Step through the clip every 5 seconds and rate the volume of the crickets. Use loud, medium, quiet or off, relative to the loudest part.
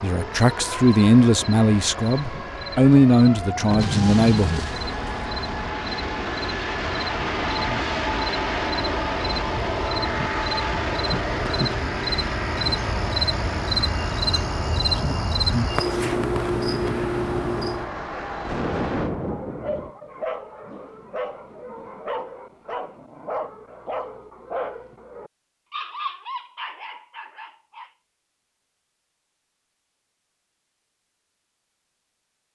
quiet, medium, loud, loud, off, off, off.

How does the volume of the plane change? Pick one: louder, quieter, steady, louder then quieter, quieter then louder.
louder then quieter.